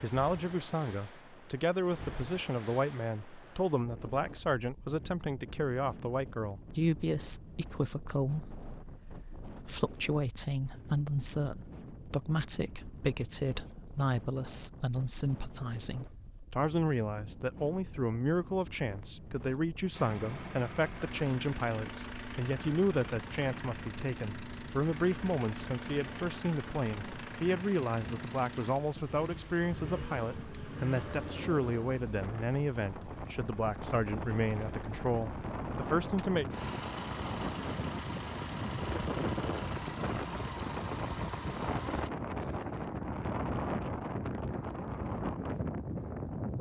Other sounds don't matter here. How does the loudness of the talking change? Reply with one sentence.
The loudness of the talking stays about the same.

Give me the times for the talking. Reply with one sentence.
You can hear the talking from 0.0 to 36.5 s.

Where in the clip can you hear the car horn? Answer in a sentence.
The car horn can't be heard in this clip.